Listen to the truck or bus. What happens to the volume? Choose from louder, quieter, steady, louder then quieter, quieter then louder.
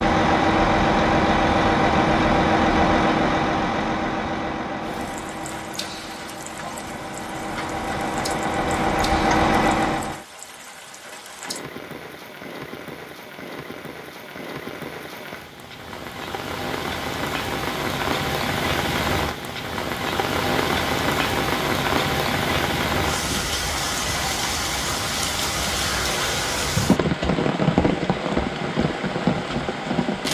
quieter then louder.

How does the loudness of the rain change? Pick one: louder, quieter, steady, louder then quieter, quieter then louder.
louder.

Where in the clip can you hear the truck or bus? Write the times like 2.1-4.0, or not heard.
0.0-10.2.